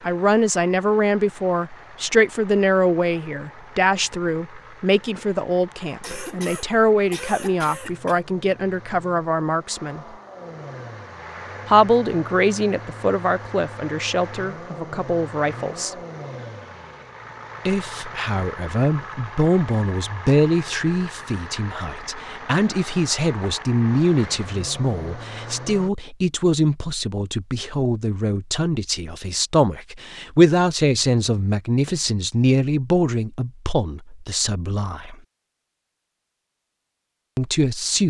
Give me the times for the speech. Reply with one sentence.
The speech can be heard from 0.0 to 10.1 s, from 11.7 to 15.9 s, from 17.6 to 35.1 s and from 37.4 to 38.0 s.